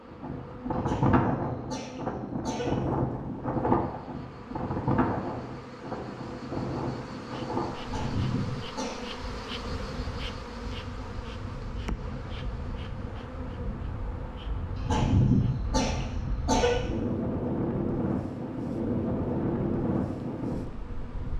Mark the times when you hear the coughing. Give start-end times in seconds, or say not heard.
0.7-2.8, 7.8-9.1, 14.8-16.8.